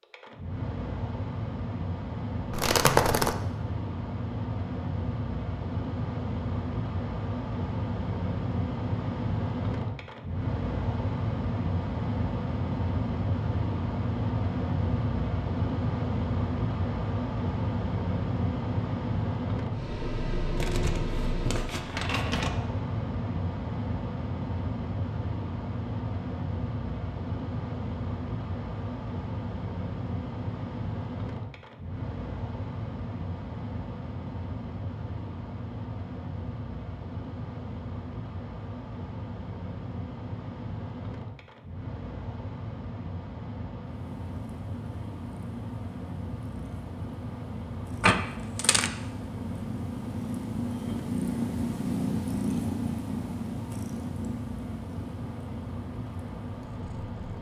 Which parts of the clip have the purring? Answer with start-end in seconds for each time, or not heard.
44.0-57.3.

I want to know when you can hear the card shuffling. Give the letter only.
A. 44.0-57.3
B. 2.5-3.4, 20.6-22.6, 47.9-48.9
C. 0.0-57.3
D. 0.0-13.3
B.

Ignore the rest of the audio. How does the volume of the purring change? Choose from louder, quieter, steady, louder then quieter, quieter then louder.
louder then quieter.